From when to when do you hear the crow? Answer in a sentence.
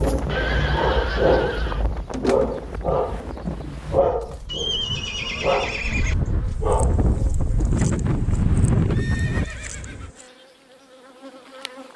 The crow can't be heard in this clip.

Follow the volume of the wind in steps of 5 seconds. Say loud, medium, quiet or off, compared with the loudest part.
medium, loud, off.